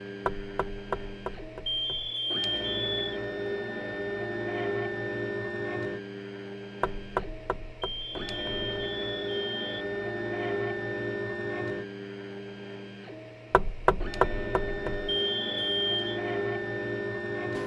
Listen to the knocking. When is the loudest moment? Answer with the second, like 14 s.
14 s.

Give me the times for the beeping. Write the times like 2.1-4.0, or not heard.
1.6-3.2, 7.8-9.8, 15.1-16.2.